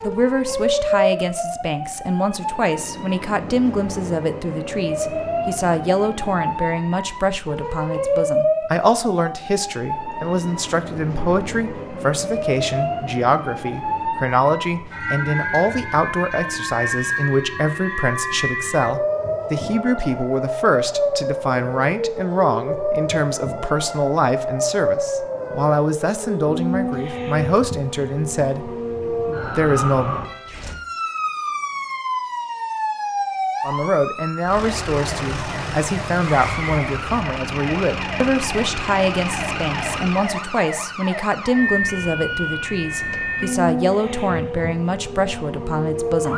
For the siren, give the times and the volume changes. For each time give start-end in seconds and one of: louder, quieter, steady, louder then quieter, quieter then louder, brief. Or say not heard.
0.0-46.3 steady.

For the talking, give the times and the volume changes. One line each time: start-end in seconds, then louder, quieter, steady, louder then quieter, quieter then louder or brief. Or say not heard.
0.0-30.2 steady
33.6-46.3 steady.